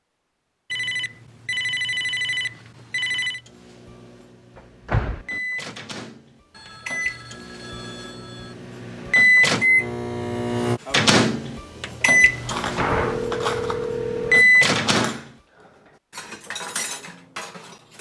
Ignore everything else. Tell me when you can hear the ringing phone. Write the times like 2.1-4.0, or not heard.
0.7-3.4, 6.5-8.6, 12.7-14.4.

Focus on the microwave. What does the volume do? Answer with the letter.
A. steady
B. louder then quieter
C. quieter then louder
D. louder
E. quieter
D.